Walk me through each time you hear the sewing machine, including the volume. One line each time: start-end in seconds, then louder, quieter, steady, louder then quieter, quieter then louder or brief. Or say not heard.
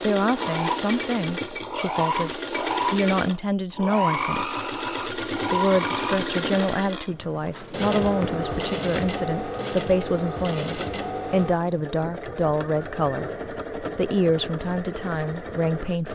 0.0-16.1 quieter.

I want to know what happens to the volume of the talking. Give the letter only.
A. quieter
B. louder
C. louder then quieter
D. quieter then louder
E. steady
E.